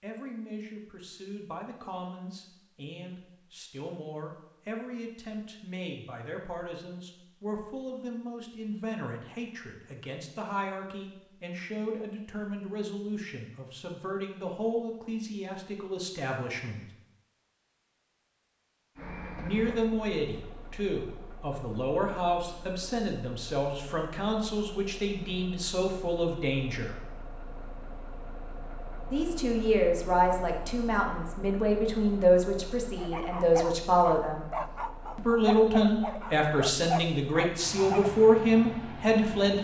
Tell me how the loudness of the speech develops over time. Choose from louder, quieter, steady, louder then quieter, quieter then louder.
louder.